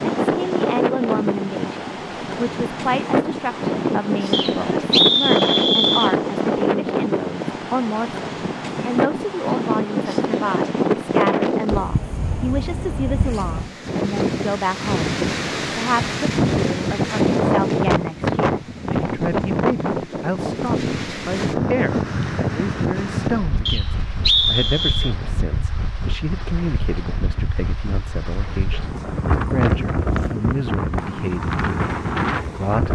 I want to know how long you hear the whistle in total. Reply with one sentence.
The whistle can be heard for 3 seconds in total.